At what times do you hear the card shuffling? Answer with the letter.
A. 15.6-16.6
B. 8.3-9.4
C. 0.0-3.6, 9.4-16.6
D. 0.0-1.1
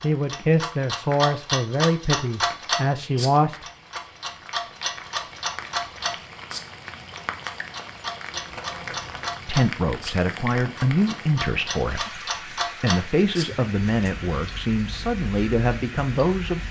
B.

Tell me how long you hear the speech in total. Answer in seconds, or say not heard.
11 s.